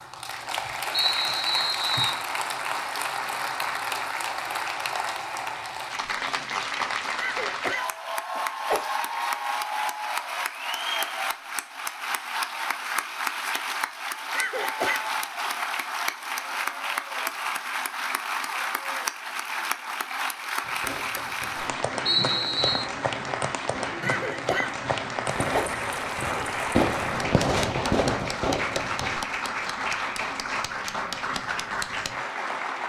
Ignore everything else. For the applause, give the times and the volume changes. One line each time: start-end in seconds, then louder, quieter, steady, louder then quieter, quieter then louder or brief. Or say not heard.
0.0-32.8 steady.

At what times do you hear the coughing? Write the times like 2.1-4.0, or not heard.
7.2-8.9, 14.3-15.1, 24.0-25.8.